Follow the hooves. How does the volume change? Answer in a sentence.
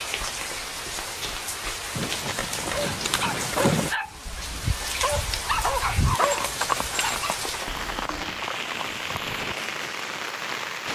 The volume of the hooves goes down.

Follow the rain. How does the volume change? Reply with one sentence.
The volume of the rain stays about the same.